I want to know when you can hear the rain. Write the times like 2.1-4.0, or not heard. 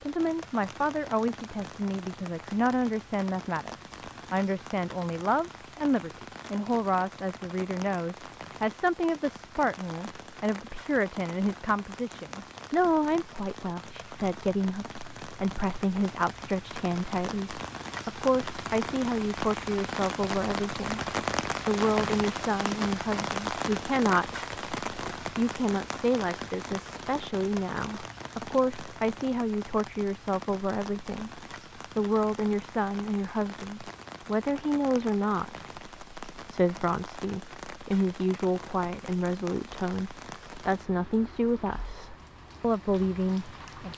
0.0-43.9.